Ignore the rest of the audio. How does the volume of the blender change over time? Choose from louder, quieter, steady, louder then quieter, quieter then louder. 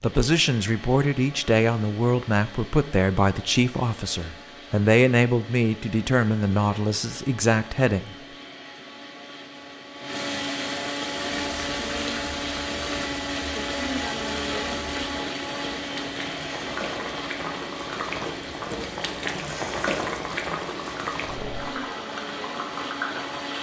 louder then quieter.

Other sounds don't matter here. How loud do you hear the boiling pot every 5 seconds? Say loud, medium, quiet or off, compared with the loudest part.
off, off, medium, loud, loud.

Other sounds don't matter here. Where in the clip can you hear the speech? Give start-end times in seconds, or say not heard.
0.0-8.1.